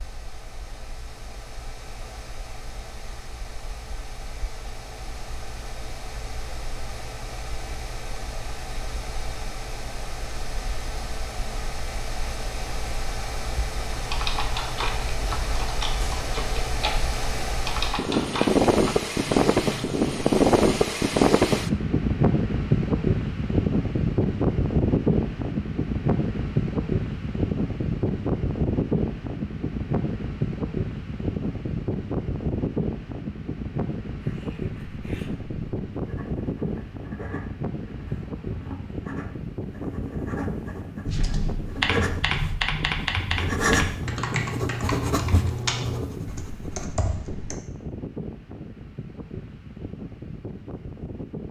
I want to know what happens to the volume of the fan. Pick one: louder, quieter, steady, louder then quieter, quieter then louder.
louder then quieter.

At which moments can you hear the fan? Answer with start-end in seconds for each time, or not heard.
0.0-51.4.